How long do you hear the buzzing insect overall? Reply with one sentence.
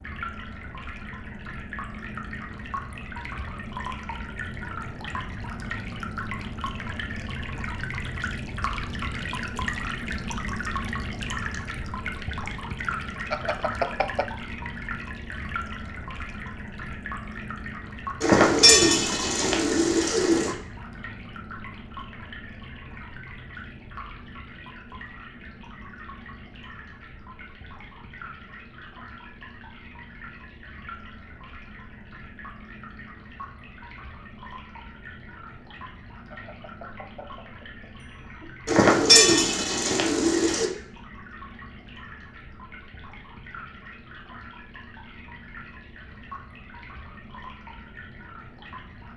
You can't hear the buzzing insect here.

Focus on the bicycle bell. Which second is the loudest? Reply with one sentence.
The volume of the bicycle bell peaks at 14 seconds.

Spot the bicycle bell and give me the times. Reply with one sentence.
The bicycle bell can be heard from 13.3 to 14.2 s and from 36.3 to 38.7 s.